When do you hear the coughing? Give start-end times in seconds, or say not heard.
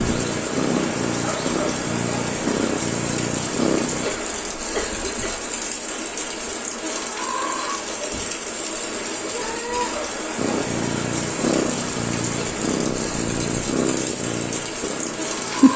4.0-5.5.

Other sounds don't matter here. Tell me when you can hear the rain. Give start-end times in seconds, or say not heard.
0.0-15.7.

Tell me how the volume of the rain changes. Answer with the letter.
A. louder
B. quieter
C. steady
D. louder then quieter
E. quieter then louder
C.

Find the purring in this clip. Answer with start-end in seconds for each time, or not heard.
0.0-4.1, 10.3-15.7.